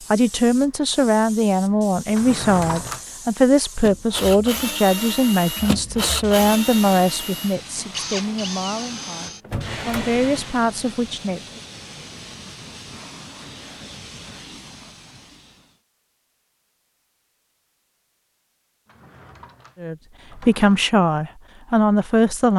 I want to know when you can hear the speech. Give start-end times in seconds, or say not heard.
0.1-11.4, 19.8-22.5.